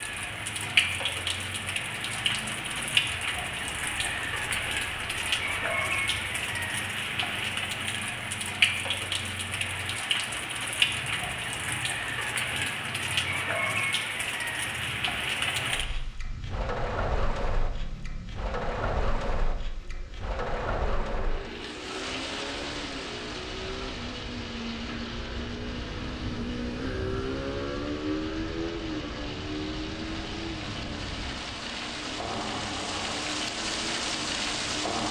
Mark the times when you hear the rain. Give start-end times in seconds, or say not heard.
0.0-35.0.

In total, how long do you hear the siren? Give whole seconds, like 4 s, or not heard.
not heard.